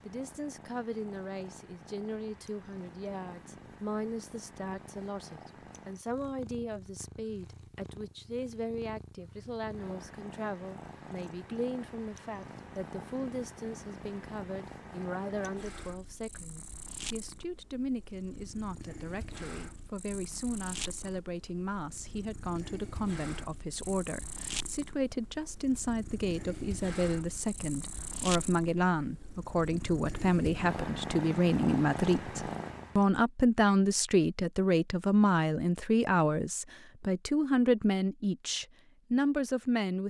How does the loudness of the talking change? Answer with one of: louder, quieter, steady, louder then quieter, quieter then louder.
louder.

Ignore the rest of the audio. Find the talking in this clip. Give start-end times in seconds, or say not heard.
0.0-40.0.